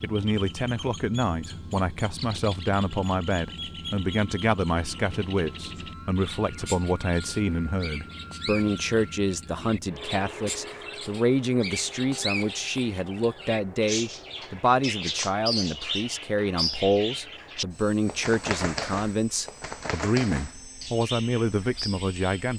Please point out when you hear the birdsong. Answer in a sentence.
The birdsong can be heard from 0.0 to 22.5 s.